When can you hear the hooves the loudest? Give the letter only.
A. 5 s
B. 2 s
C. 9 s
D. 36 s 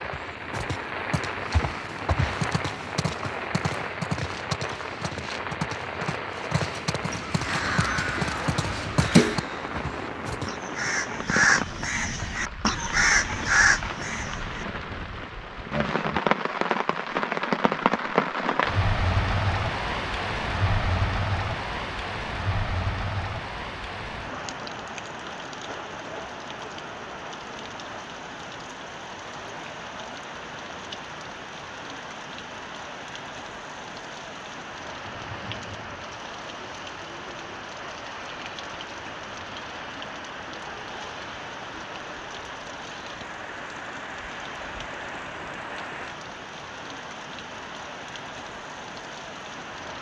C.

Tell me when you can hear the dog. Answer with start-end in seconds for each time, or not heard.
not heard.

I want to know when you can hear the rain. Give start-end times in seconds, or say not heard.
0.0-49.9.